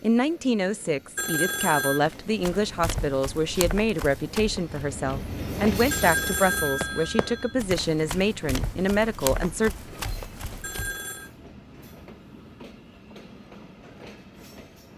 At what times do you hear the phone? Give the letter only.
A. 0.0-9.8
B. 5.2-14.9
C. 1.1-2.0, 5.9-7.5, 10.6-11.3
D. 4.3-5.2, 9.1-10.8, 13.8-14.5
C.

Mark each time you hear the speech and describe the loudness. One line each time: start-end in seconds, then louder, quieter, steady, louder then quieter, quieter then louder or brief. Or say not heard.
0.0-9.8 steady.